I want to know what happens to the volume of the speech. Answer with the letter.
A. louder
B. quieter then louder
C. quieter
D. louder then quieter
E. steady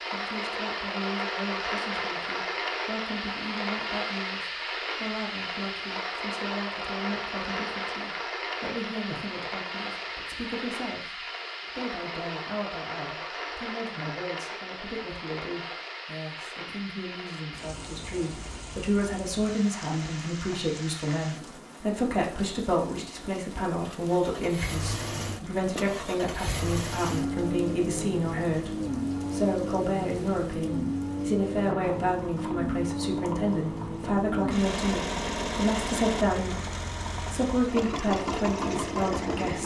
A.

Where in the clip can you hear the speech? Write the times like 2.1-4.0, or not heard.
0.1-39.6.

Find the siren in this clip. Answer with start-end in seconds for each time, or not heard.
not heard.